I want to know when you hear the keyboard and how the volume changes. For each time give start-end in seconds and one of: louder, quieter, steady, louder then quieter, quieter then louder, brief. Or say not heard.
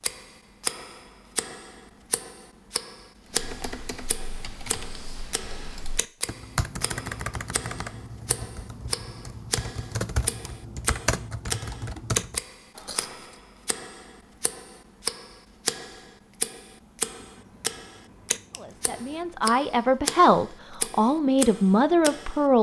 3.3-12.4 louder.